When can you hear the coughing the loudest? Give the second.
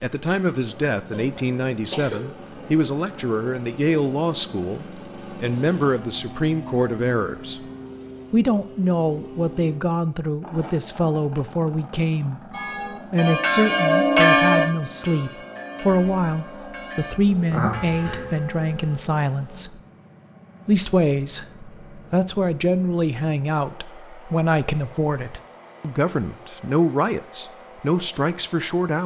18 s.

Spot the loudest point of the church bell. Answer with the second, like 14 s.
14 s.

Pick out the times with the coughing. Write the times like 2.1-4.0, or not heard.
1.1-2.2, 17.5-18.3.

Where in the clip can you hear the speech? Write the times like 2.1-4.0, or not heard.
0.0-7.6, 8.3-12.4, 13.1-19.8, 20.6-29.0.